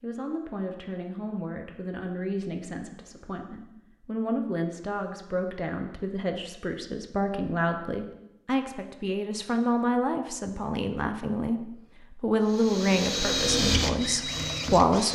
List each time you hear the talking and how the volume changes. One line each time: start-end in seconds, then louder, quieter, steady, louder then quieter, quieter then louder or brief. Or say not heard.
0.0-15.0 louder.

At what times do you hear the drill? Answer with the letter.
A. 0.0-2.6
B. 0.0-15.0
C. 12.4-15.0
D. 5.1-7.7
C.